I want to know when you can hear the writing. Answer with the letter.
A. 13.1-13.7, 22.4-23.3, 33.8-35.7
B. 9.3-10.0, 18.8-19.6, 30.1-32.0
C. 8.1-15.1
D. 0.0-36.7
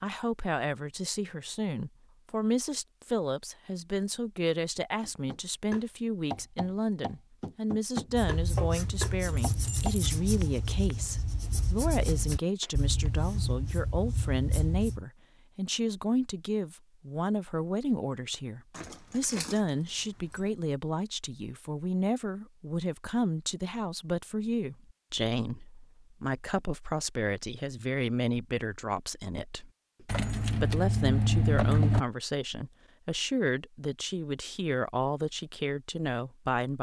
C.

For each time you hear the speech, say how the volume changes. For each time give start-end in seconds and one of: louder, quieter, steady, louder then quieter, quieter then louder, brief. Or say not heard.
0.0-36.7 steady.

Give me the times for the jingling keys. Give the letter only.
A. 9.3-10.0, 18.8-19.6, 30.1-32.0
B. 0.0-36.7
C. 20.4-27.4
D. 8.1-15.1
A.